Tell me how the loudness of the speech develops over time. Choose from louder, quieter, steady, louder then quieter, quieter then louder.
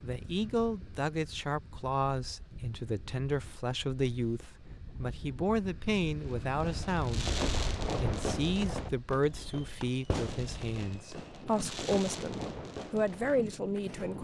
steady.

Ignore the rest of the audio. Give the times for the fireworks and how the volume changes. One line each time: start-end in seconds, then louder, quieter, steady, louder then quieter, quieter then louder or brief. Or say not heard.
6.2-14.1 quieter.